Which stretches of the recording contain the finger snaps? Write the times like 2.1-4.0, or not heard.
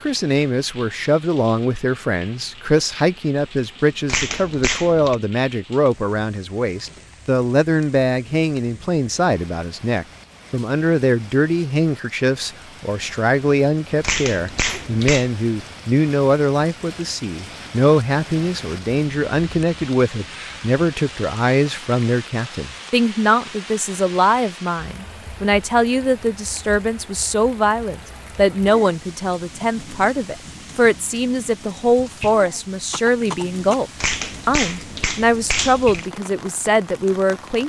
4.0-5.2, 14.0-15.3, 34.0-36.0.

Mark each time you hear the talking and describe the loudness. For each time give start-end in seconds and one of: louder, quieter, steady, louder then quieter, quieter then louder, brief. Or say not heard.
0.0-37.6 steady.